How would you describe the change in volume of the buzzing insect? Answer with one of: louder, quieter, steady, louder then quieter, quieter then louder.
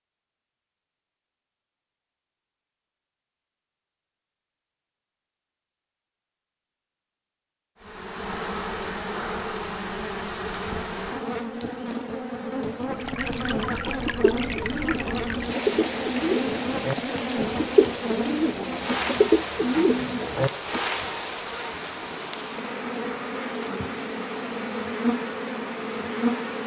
steady.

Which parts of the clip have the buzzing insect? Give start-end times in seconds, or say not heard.
7.8-26.6.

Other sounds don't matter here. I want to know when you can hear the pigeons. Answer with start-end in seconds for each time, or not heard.
13.8-20.8.